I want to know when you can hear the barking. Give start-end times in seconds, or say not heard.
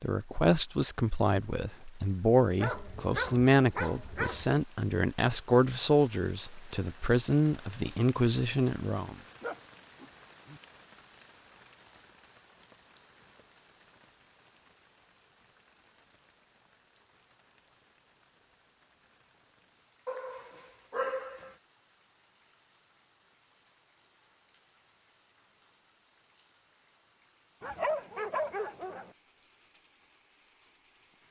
2.5-4.5, 9.4-10.6, 20.1-21.6, 27.6-29.1.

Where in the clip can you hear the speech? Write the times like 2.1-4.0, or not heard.
0.0-9.2.